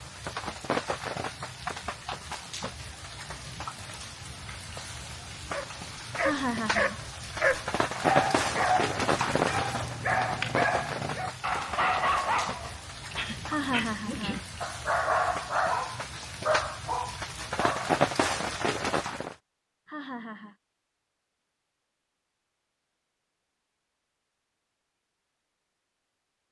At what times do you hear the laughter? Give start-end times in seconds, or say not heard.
6.2-7.0, 13.4-14.7, 19.9-20.6.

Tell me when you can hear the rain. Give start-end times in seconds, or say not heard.
0.0-19.4.